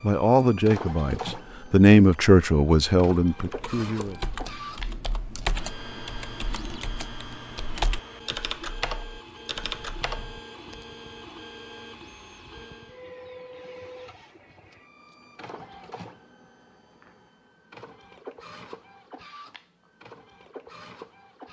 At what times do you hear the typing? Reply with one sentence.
The typing can be heard from 3.3 to 10.8 s.